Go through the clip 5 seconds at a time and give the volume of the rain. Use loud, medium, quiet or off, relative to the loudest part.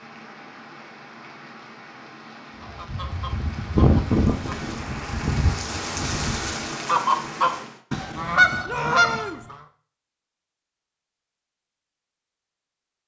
medium, loud, off.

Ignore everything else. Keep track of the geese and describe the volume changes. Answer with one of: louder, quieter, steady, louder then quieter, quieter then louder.
quieter then louder.